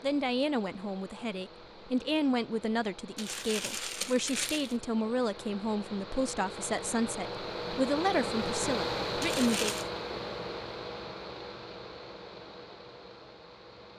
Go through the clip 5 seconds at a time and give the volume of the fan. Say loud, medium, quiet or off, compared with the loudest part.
quiet, loud, medium.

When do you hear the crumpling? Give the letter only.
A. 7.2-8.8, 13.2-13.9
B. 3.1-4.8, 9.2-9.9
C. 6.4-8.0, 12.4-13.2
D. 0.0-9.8
B.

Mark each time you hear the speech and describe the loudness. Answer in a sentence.
The speech can be heard from 0.0 to 9.8 s, at a steady volume.